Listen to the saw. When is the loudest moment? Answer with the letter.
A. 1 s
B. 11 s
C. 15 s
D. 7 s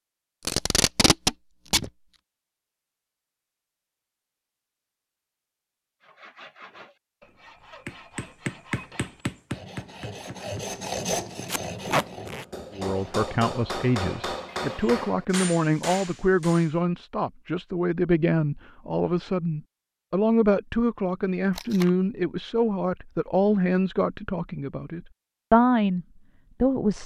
B.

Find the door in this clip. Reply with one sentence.
The door can't be heard in this clip.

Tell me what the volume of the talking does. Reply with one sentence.
The volume of the talking stays about the same.